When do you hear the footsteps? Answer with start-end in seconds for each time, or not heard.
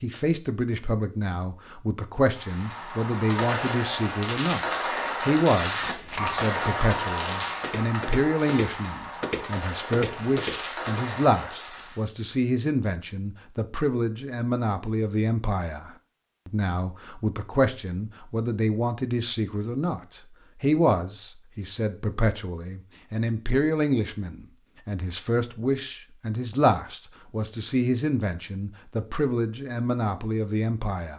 5.7-11.1.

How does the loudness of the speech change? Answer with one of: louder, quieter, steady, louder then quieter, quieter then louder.
steady.